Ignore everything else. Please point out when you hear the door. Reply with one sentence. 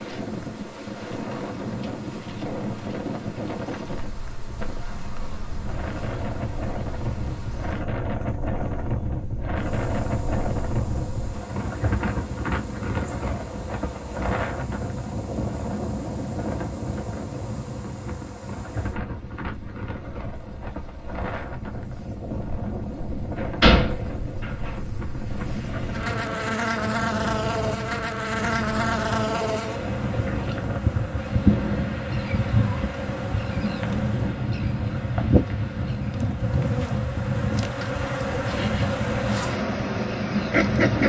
The door can be heard from 23.4 to 24.7 s.